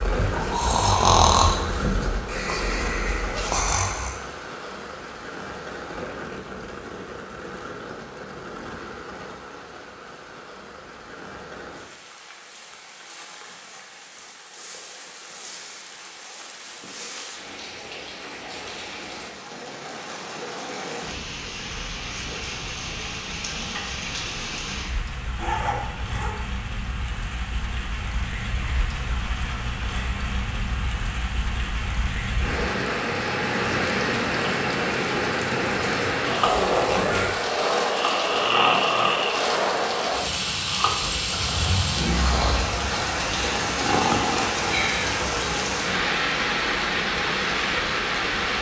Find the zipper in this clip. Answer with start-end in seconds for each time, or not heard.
3.2-3.7, 25.4-26.4, 36.5-37.5.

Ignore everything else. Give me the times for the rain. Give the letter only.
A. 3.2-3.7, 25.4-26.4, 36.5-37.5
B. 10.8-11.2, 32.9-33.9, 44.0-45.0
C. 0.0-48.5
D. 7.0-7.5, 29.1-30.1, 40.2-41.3
C.